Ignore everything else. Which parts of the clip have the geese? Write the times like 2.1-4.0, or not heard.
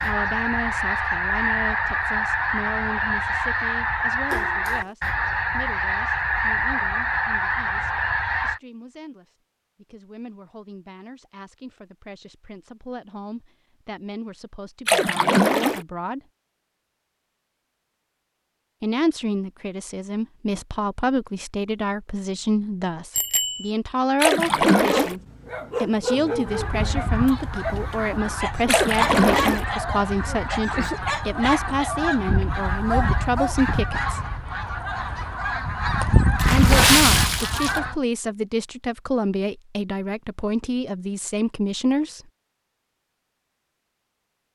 0.0-8.6, 26.4-38.0.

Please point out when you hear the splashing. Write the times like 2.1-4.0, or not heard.
4.3-4.9, 14.8-15.8, 24.2-25.1, 28.6-29.6, 36.4-37.8.